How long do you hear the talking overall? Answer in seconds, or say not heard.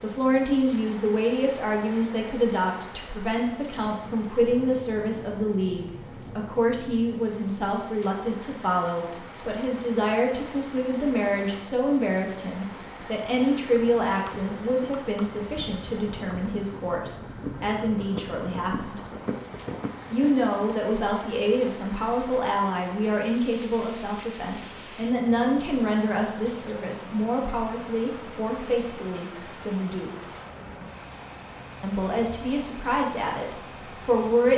32 s.